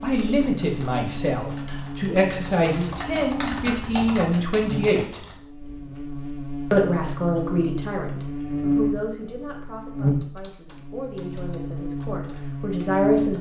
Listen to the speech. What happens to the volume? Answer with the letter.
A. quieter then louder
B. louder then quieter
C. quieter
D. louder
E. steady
A.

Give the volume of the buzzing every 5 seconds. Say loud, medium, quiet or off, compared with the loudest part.
medium, loud, loud.